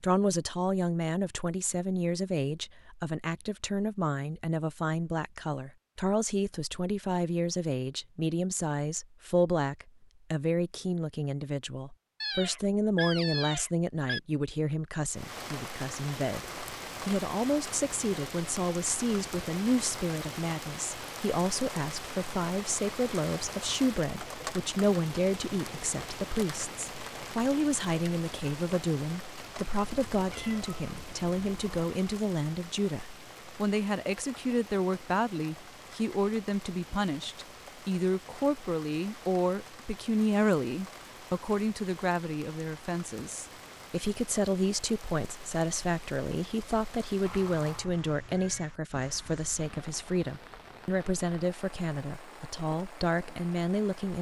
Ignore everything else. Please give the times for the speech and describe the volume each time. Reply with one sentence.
You can hear the speech from 0.0 to 54.1 s, at a steady volume.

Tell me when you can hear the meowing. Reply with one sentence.
You can hear the meowing from 12.2 to 14.2 s, from 29.8 to 31.8 s and from 47.2 to 48.7 s.